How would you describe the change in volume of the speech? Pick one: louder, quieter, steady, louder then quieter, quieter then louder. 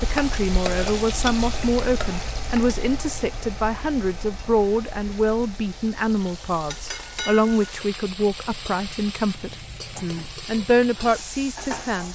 steady.